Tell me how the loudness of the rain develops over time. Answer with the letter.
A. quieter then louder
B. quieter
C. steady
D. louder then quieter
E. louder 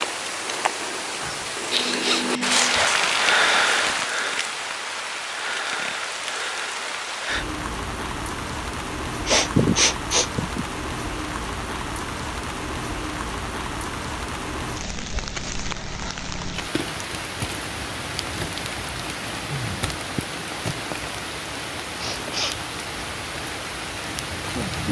B.